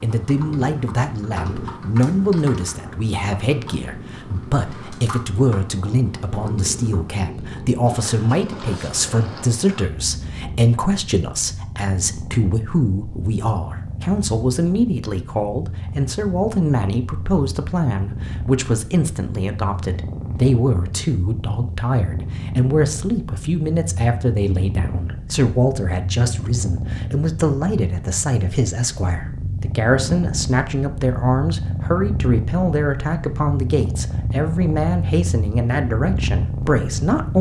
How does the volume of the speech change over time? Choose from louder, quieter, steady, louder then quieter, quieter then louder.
steady.